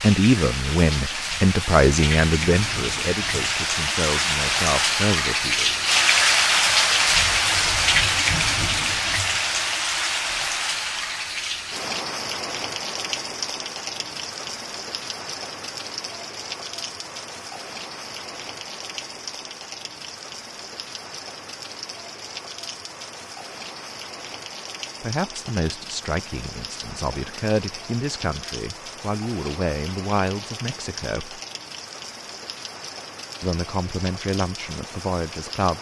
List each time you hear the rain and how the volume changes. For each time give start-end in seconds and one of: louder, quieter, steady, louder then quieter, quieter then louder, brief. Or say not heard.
0.0-35.7 quieter.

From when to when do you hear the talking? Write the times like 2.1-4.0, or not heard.
0.0-5.8, 25.0-31.4, 33.4-35.7.